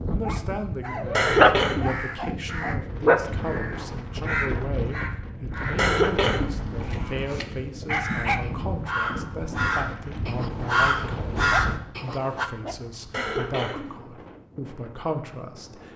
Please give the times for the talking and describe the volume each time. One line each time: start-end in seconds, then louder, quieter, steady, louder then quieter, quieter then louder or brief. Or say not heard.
0.1-15.9 steady.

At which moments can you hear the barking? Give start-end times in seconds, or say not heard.
0.2-2.8, 6.8-8.5, 11.5-13.4.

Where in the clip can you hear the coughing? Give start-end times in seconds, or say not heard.
1.1-1.9, 5.8-7.5, 13.1-13.8.